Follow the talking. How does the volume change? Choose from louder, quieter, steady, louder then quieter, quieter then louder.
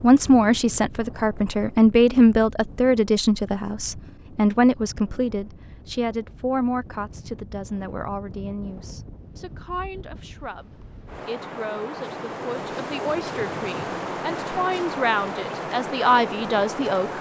quieter then louder.